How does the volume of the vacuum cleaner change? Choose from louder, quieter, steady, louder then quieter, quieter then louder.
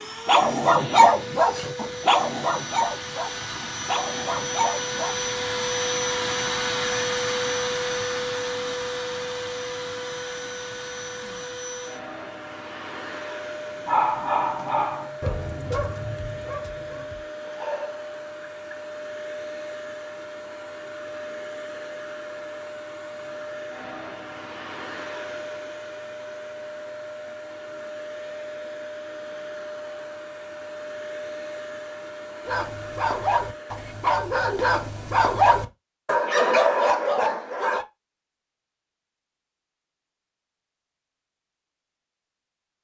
quieter.